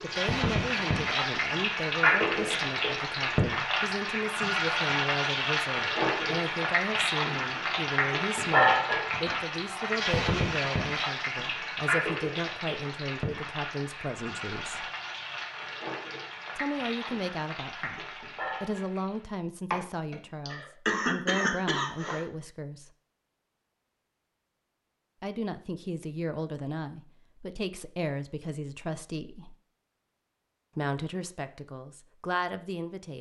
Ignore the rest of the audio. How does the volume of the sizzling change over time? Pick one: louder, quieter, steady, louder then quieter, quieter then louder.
quieter.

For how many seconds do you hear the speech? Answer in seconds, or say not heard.
28 s.